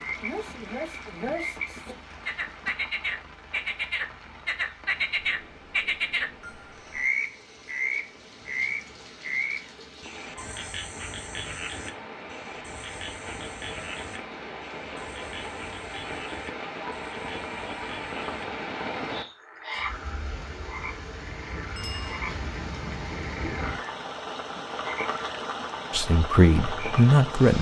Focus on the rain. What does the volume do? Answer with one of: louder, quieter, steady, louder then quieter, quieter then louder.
louder.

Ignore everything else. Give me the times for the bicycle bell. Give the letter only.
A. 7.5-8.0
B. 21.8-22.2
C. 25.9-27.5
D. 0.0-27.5
B.